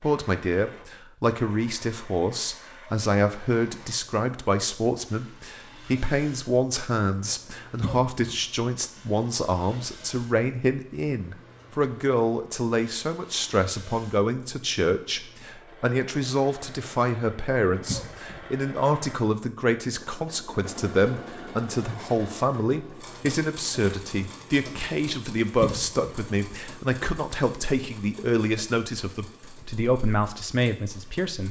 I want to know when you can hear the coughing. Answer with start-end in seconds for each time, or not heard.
7.8-8.3, 17.9-18.4, 25.6-26.1.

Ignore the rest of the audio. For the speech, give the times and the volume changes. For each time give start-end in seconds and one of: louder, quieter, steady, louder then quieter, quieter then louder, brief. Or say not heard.
0.0-31.4 steady.